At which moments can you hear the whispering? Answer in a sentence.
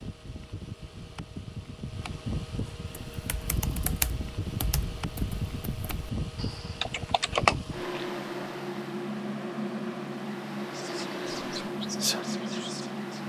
You can hear the whispering from 10.7 to 13.2 s.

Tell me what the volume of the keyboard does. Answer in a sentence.
The loudness of the keyboard goes down, then up.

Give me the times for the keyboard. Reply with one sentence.
You can hear the keyboard from 3.1 to 8.1 s.